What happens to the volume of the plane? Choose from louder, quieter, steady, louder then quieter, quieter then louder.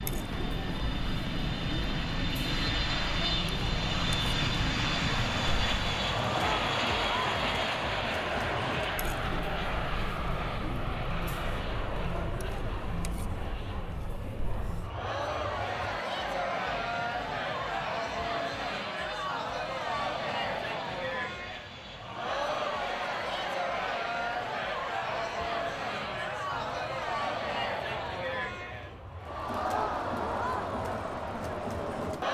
quieter.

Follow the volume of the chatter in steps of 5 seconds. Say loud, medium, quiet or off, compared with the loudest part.
medium, loud, medium, loud, loud, loud, loud.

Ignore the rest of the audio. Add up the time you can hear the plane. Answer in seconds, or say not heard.
32 s.